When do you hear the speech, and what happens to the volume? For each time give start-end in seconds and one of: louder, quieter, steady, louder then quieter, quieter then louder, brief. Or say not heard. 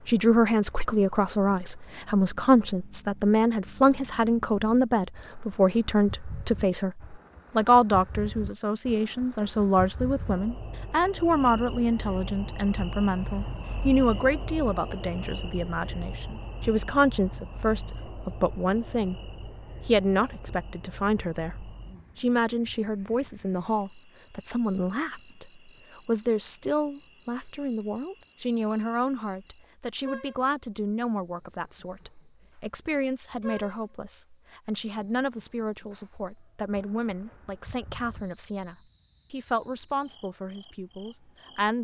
0.1-41.7 quieter.